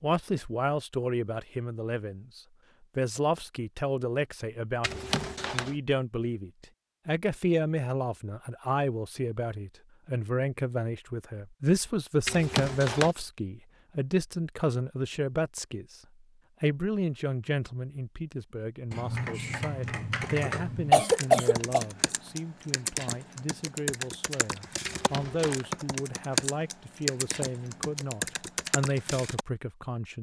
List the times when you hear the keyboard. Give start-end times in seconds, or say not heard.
18.9-29.4.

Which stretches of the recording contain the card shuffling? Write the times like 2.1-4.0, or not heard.
4.8-5.8, 12.2-13.2, 24.9-25.6.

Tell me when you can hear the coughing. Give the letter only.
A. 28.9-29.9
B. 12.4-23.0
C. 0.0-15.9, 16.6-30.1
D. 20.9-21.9
D.